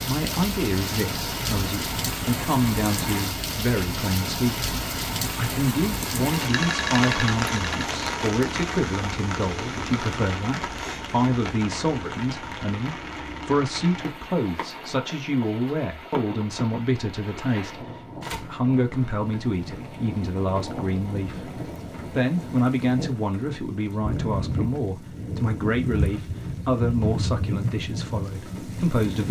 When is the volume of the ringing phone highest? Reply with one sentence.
The volume of the ringing phone peaks at 7 seconds.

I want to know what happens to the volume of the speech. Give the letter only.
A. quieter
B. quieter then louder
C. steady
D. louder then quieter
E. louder
C.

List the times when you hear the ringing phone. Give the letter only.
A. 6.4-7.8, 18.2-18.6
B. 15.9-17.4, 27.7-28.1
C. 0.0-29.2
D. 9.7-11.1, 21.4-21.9
A.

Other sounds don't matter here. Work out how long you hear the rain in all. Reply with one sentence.
The rain can be heard for 29 seconds in total.